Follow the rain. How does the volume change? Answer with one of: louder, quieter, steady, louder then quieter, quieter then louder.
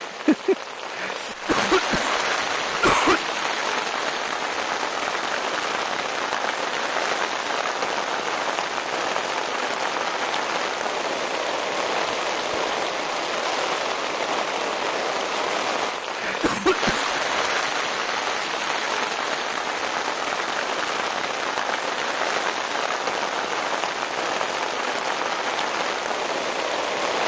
steady.